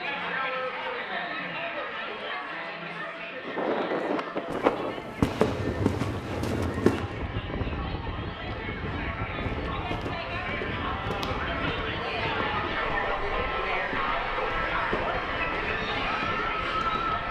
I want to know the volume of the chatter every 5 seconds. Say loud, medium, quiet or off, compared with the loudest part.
medium, medium, loud, loud.